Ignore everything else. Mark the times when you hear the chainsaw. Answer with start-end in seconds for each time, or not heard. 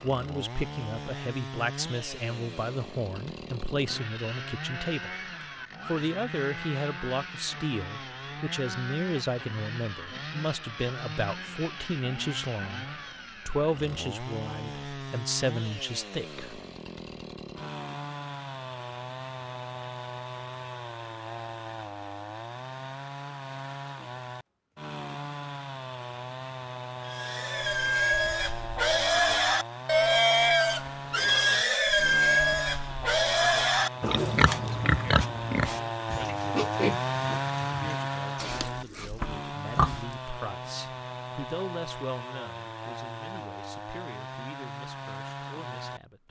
0.0-46.2.